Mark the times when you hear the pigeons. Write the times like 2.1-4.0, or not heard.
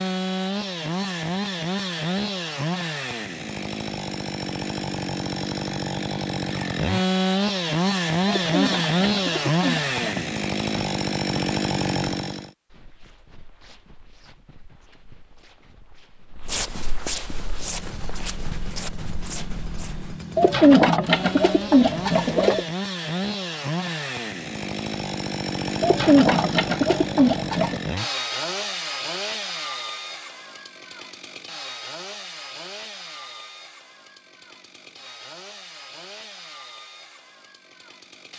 8.2-10.2, 20.4-22.6, 25.8-27.8.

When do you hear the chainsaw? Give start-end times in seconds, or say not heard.
0.0-12.5, 17.4-38.3.